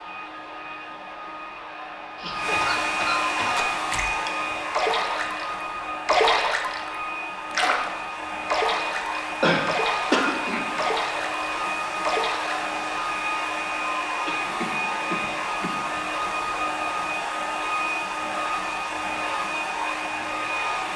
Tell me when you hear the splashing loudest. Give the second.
6 s.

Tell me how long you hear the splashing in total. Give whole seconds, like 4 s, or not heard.
9 s.